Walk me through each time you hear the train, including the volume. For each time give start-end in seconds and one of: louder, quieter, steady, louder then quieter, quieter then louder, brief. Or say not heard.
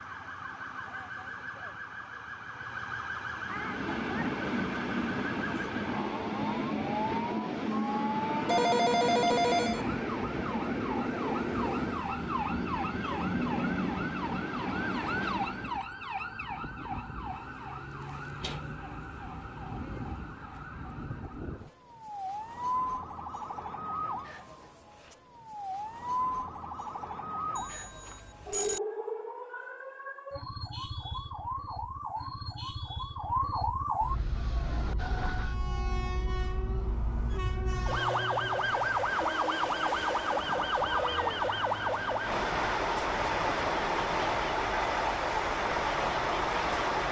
3.4-15.8 steady
34.0-47.0 louder.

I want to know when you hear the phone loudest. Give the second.
9 s.